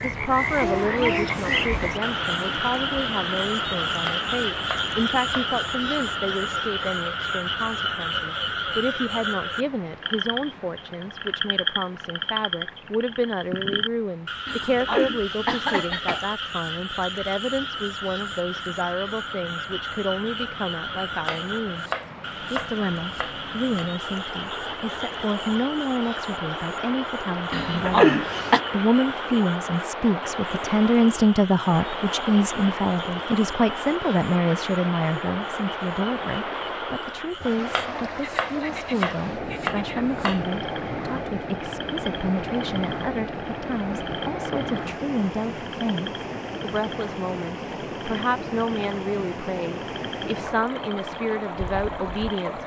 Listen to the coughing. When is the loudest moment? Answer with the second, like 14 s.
28 s.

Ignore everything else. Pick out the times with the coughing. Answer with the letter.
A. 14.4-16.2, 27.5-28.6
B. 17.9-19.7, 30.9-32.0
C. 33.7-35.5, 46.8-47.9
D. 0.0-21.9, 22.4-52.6
A.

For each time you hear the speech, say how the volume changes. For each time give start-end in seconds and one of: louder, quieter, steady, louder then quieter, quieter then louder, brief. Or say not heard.
0.0-21.9 steady
22.4-52.6 louder then quieter.